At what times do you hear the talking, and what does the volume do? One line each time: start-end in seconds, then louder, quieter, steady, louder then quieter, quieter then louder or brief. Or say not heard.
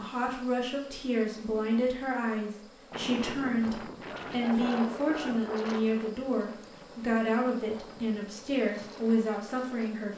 0.0-10.1 steady.